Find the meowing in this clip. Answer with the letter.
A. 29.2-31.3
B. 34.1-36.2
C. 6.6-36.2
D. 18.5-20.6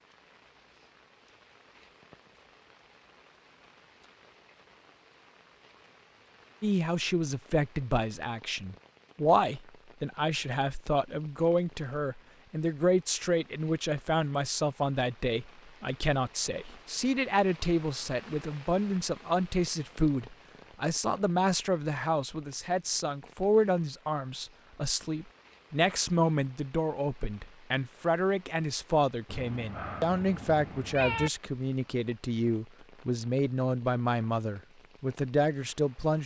A.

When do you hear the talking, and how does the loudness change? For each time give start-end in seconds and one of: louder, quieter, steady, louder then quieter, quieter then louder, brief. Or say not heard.
6.6-36.2 steady.